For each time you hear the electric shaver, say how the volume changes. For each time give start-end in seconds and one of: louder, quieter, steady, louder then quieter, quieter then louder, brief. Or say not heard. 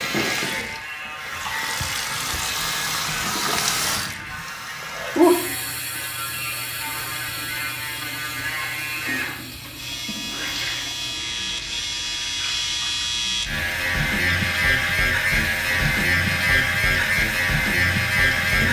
0.0-18.6 louder.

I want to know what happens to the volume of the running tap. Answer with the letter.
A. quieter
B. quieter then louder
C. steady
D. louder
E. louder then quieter
A.